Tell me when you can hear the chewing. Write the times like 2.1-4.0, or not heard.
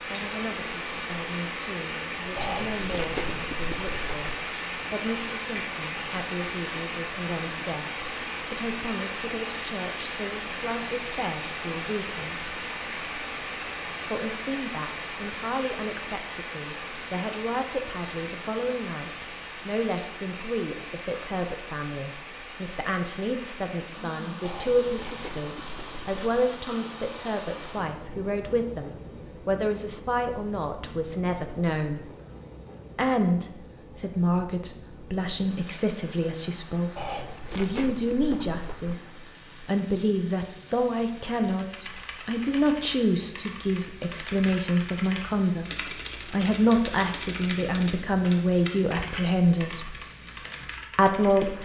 2.4-4.3, 24.4-26.2, 37.0-39.0.